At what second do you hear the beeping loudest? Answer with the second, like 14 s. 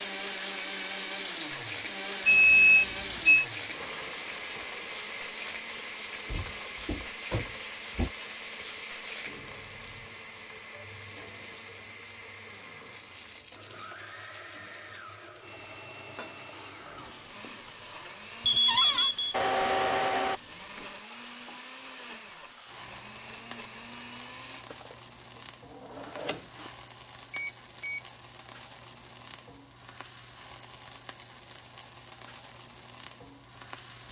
3 s.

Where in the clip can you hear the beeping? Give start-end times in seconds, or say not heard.
2.2-3.5, 18.4-20.4, 27.3-28.1.